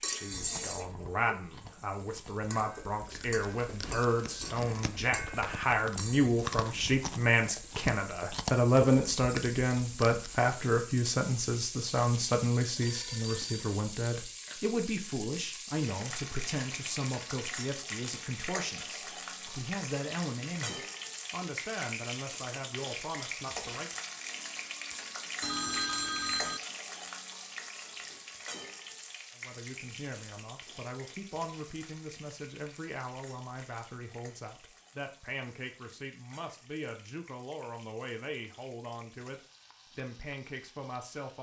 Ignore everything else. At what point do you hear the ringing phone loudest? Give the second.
26 s.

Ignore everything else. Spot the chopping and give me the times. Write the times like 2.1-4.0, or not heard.
not heard.